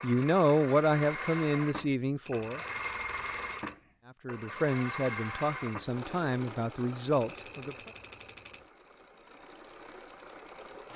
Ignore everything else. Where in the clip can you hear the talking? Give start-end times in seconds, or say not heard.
0.0-2.6, 4.2-7.9.